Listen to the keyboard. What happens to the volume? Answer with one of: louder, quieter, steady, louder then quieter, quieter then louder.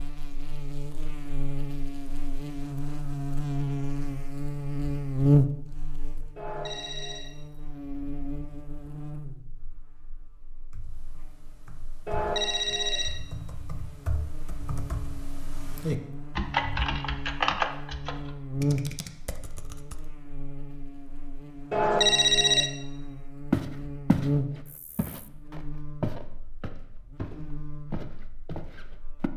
louder then quieter.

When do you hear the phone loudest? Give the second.
22 s.